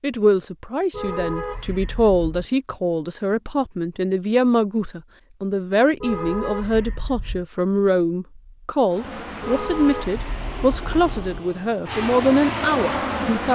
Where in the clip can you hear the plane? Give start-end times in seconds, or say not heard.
8.8-13.4.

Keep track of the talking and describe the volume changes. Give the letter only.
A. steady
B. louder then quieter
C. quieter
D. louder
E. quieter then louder
A.